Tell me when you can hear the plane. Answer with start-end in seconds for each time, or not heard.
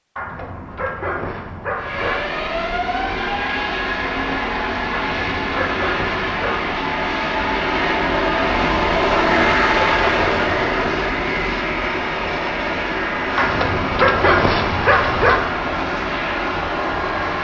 1.8-17.3.